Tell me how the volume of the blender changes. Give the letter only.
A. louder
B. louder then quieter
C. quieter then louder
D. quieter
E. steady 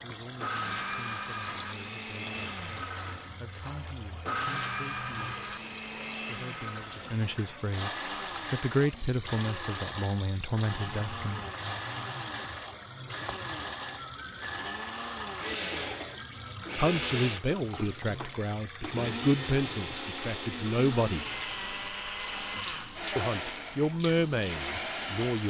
E.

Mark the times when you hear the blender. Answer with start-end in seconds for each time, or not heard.
0.2-25.4.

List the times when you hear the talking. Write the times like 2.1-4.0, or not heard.
0.0-5.4, 6.2-11.5, 16.8-21.2, 23.1-25.4.